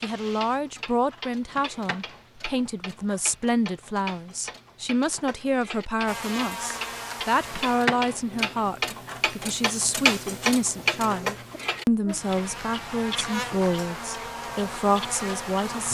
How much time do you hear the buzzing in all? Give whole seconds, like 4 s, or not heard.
10 s.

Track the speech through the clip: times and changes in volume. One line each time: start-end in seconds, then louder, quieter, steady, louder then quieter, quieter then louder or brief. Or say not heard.
0.0-15.9 steady.